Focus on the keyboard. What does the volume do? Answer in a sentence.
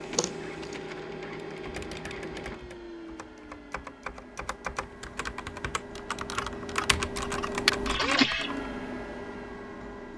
The loudness of the keyboard goes up.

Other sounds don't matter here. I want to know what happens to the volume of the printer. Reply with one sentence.
The loudness of the printer goes down, then up.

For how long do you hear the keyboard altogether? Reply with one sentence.
You can hear the keyboard for 7 seconds altogether.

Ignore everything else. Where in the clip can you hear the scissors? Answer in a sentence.
The scissors can be heard from 0.1 to 0.8 s and from 6.3 to 7.7 s.